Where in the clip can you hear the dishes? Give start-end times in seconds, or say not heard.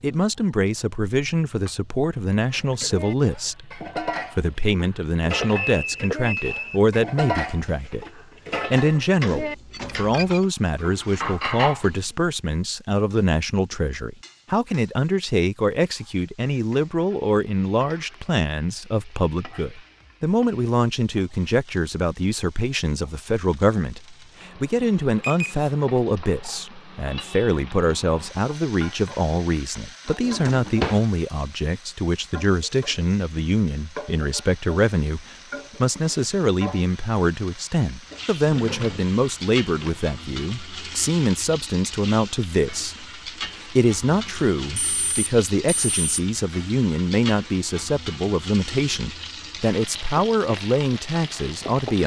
2.5-12.1.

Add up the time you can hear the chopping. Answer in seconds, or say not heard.
not heard.